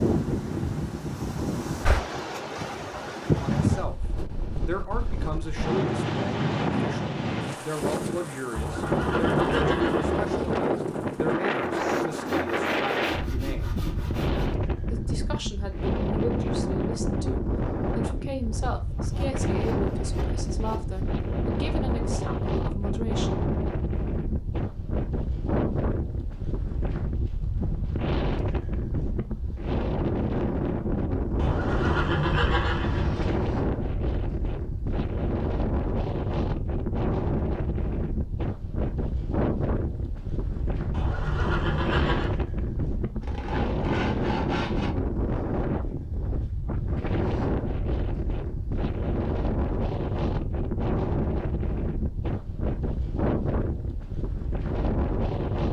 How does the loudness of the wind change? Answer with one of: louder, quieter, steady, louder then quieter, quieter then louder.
steady.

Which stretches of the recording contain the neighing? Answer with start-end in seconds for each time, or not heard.
8.6-10.6, 31.4-33.4, 40.9-42.4.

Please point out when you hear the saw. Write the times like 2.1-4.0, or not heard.
11.8-14.6, 18.9-21.1, 43.2-45.0.